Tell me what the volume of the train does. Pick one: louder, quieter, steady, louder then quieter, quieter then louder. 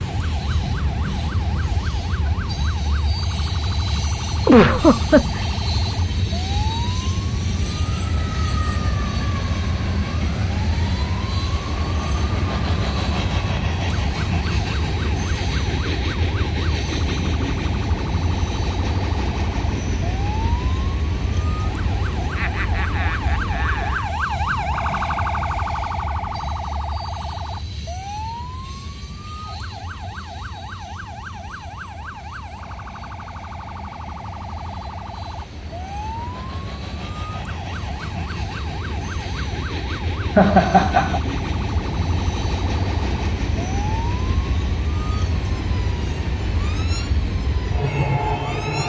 quieter then louder.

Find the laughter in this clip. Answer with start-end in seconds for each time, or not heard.
4.5-5.5, 22.4-24.1, 40.4-41.2.